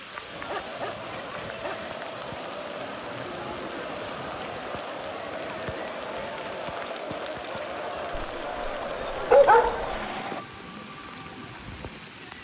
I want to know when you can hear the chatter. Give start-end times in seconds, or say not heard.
0.0-10.4.